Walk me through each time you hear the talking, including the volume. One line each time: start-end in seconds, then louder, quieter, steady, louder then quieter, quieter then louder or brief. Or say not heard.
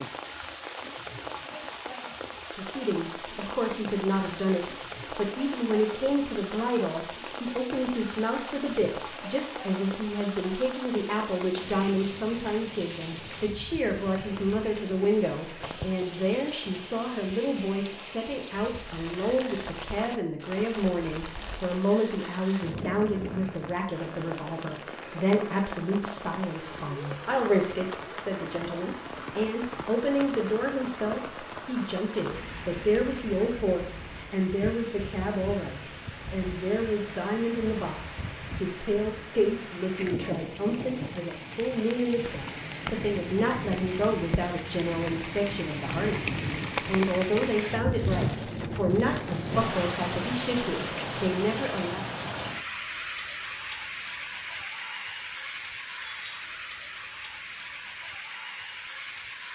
2.5-52.0 steady.